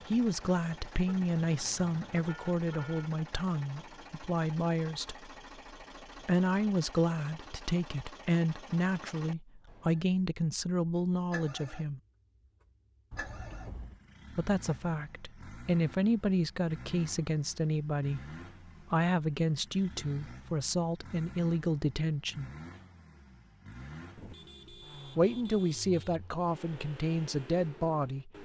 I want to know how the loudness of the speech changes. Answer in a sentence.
The loudness of the speech stays about the same.